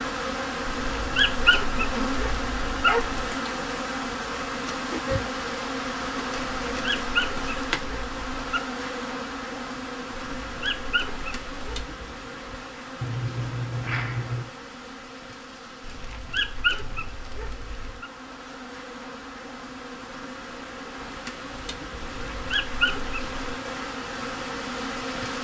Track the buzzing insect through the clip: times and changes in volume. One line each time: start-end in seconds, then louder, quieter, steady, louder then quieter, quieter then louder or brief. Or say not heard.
0.0-25.3 quieter then louder.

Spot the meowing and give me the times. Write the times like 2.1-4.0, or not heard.
13.0-14.5.